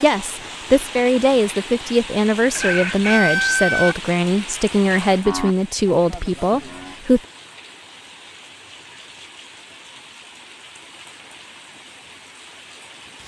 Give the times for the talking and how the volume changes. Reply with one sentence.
The talking can be heard from 0.0 to 7.2 s, at a steady volume.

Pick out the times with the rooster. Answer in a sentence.
You can hear the rooster from 2.5 to 4.0 s.